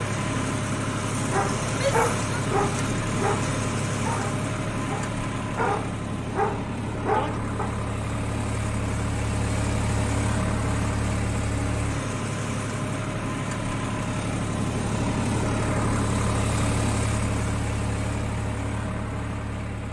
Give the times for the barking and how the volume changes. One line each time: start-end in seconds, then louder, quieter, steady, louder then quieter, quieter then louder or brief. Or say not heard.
1.2-7.8 quieter then louder.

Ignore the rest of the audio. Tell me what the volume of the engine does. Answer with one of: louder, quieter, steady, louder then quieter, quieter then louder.
steady.